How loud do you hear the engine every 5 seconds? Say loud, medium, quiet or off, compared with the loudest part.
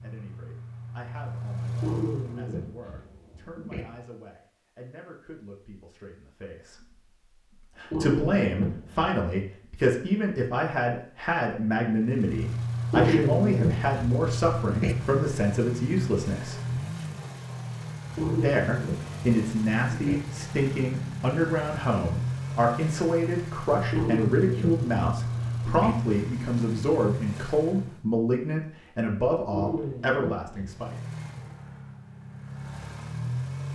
medium, off, loud, loud, loud, loud, medium.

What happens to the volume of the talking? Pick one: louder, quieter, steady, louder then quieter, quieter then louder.
louder.